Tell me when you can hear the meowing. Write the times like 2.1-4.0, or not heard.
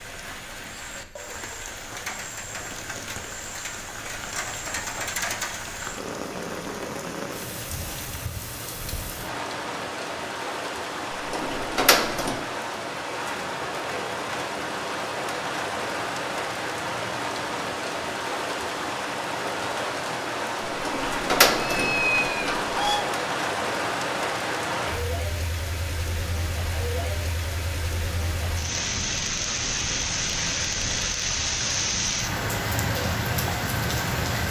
21.6-23.1.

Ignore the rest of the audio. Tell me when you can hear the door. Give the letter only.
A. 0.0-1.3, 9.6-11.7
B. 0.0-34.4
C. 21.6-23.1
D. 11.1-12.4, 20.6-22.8
D.